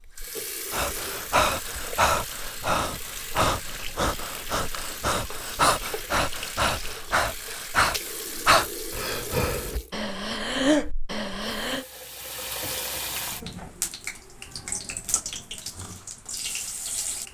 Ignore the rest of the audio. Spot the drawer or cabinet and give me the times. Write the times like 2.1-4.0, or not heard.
not heard.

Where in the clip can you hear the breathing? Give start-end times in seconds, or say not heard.
0.7-11.8.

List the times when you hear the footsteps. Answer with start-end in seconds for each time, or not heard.
not heard.